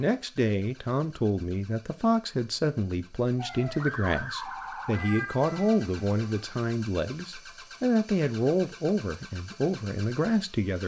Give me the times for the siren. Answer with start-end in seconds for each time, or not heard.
3.4-6.5.